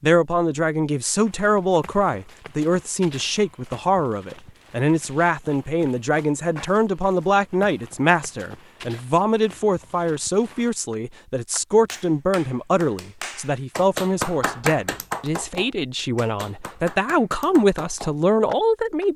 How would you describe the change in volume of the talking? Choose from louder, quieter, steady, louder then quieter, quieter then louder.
steady.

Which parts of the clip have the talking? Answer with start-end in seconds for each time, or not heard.
0.0-19.1.